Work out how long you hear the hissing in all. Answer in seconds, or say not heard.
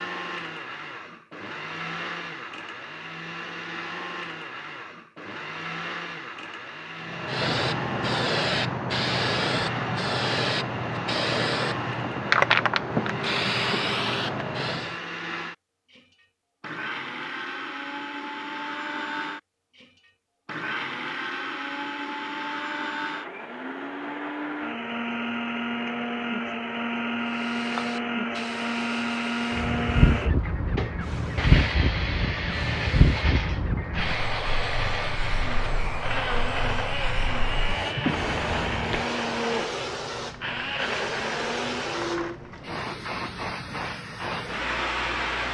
26 s.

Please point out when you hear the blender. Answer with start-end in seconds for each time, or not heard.
0.0-42.4.